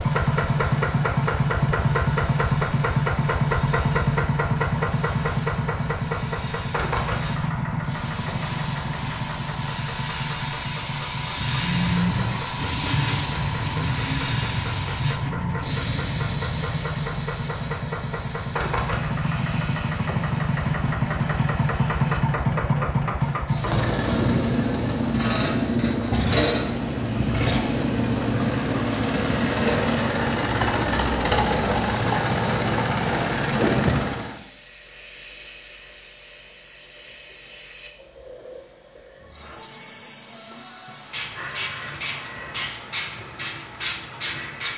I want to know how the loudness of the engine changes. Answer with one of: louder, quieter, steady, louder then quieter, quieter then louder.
quieter then louder.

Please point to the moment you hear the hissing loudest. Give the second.
13 s.